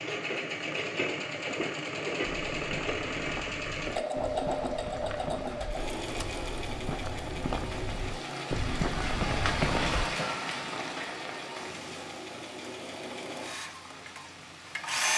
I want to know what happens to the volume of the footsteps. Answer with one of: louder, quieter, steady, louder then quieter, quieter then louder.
louder.